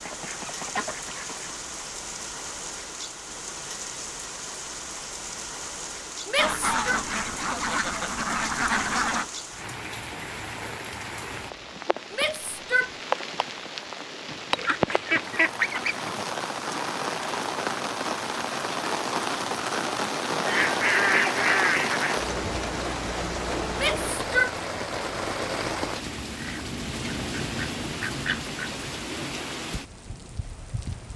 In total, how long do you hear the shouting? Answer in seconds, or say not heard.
2 s.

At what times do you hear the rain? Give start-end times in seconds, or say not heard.
0.0-31.1.